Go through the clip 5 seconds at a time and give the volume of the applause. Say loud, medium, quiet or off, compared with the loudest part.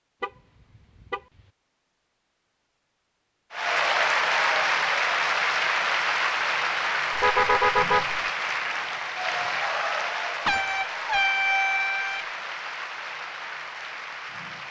loud, loud, medium.